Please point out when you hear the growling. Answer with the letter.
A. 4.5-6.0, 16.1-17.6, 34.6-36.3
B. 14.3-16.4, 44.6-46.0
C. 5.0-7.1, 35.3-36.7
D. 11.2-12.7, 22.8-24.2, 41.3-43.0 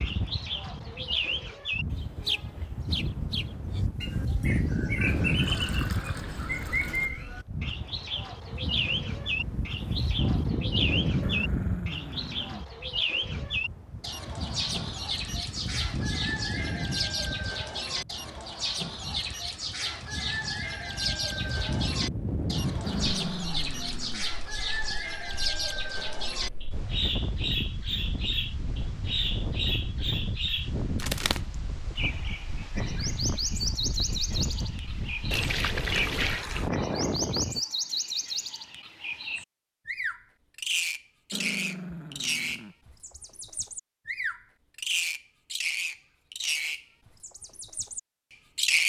D.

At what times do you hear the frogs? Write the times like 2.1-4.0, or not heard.
not heard.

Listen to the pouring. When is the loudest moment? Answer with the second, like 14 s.
36 s.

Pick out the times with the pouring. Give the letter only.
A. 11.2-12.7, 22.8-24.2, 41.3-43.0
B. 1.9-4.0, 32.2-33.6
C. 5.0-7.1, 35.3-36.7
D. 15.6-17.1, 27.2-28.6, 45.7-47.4
C.